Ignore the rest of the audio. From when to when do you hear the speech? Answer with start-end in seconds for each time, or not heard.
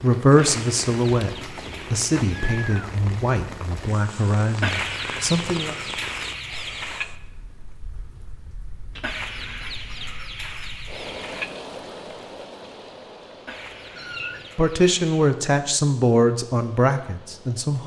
0.0-1.3, 1.9-5.8, 14.6-17.8.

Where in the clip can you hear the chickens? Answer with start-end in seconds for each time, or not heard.
0.3-2.8, 4.6-7.0, 9.0-11.5, 13.4-15.3.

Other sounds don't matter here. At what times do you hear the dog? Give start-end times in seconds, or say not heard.
not heard.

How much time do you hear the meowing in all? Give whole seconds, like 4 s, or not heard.
2 s.